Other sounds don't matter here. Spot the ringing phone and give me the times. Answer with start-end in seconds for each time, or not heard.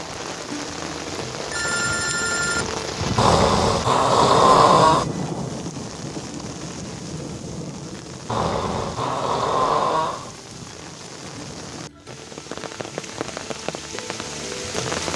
1.5-2.7.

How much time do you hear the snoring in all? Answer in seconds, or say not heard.
4 s.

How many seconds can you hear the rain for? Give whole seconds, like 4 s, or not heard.
15 s.